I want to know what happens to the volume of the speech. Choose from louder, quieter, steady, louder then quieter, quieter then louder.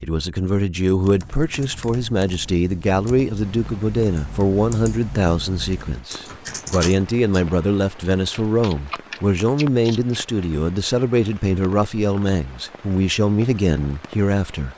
steady.